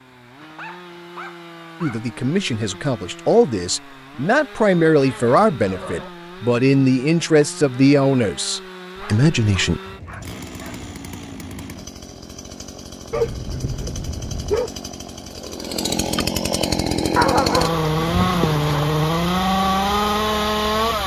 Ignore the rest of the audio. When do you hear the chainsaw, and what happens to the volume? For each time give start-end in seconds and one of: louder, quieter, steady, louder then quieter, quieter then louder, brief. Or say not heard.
0.0-21.0 louder.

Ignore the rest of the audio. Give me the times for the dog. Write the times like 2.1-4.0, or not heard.
0.4-2.0, 5.0-6.1, 8.9-10.9, 13.1-14.7, 17.1-18.9.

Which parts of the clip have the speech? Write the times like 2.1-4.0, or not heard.
1.8-9.8.